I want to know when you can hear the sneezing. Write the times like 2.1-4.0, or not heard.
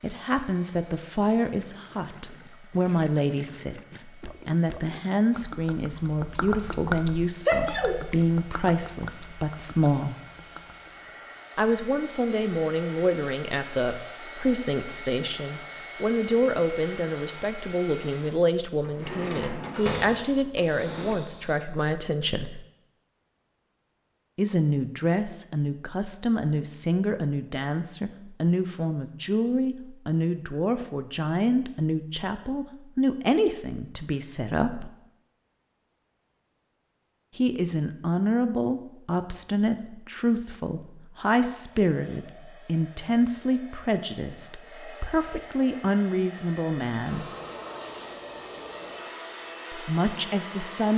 7.5-8.0.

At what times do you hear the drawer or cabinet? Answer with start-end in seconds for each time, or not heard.
18.8-21.2.